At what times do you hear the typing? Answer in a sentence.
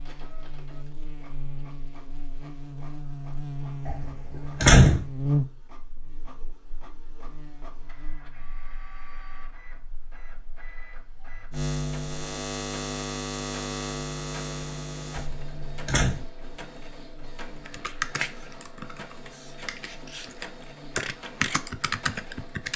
The typing can be heard from 17.6 to 22.7 s.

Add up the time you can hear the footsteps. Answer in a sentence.
You can't hear the footsteps here.